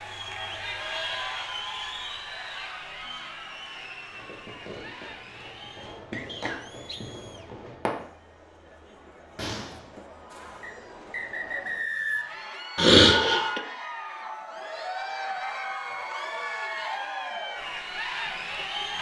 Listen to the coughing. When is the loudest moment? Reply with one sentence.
The volume of the coughing peaks at 13 seconds.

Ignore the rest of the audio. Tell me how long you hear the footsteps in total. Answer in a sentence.
The footsteps can't be heard in this clip.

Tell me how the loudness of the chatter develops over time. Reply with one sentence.
The loudness of the chatter goes down, then up.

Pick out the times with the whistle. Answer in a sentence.
You can hear the whistle from 6.2 to 7.0 s and from 10.6 to 12.4 s.